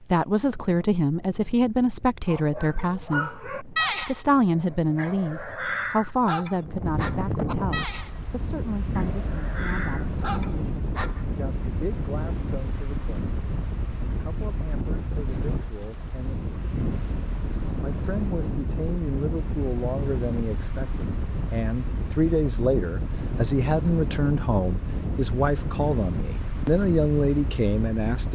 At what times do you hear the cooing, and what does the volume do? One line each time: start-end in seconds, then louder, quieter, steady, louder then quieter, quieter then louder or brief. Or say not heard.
not heard.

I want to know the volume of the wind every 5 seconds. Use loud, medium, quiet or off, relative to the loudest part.
quiet, loud, loud, loud, loud, loud.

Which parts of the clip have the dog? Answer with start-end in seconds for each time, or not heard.
2.2-4.2, 4.9-8.1, 8.8-11.2.